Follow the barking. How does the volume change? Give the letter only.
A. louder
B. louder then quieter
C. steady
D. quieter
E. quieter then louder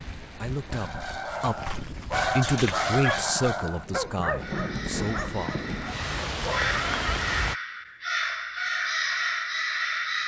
B.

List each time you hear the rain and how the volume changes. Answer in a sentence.
The rain can be heard from 0.0 to 7.5 s, getting louder.